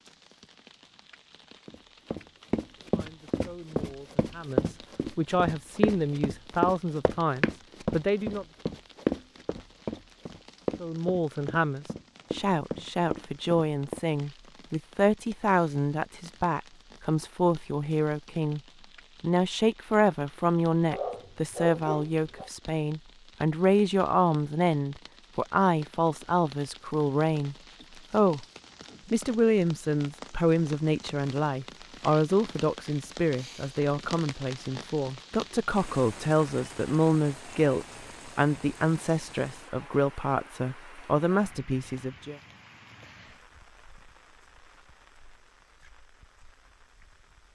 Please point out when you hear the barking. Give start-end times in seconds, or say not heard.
20.9-22.5.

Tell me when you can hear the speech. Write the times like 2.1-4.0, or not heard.
2.9-8.4, 10.8-18.6, 19.2-28.4, 29.1-42.4.